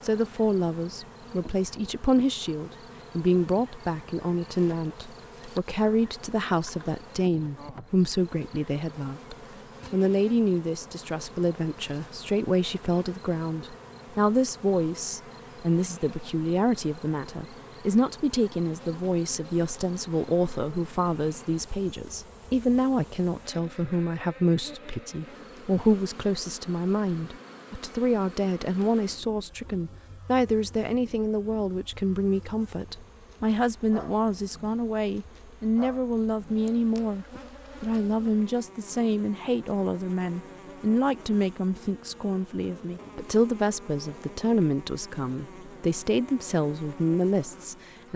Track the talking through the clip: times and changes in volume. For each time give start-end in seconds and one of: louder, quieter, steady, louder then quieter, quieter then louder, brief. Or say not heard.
0.0-48.1 steady.